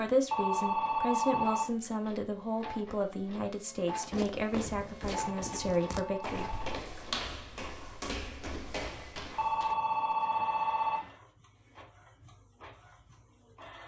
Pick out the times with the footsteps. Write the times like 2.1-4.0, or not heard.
4.1-10.2.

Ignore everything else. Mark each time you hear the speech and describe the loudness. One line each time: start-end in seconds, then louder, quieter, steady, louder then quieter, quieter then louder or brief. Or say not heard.
0.0-7.0 steady.